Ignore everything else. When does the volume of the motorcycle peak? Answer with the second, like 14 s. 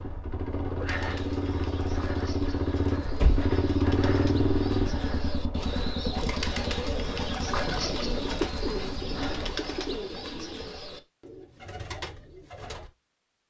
4 s.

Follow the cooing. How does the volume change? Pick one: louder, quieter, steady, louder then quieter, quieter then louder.
louder then quieter.